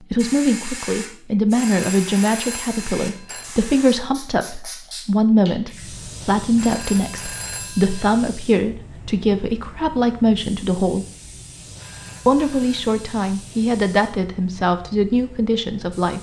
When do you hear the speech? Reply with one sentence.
The speech can be heard from 0.1 to 11.1 s and from 12.2 to 16.1 s.